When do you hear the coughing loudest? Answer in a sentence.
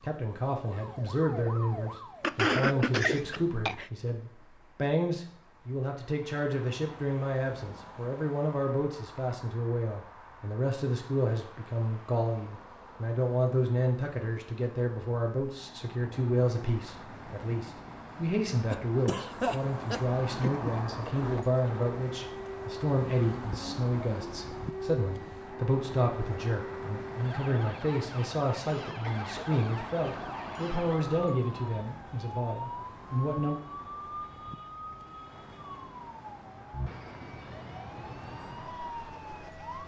The loudest moment of the coughing is at 3 seconds.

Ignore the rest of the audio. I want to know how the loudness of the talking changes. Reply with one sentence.
The volume of the talking stays about the same.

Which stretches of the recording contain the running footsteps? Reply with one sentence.
The running footsteps can't be heard in this clip.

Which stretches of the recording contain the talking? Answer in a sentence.
The talking can be heard from 0.0 to 33.6 s.